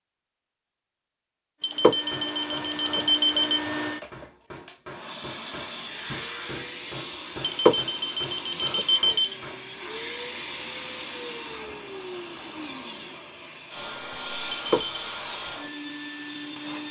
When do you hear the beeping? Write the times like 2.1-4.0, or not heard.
1.6-3.6, 7.4-9.2, 14.5-15.1.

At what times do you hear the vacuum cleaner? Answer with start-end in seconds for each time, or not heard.
1.6-16.8.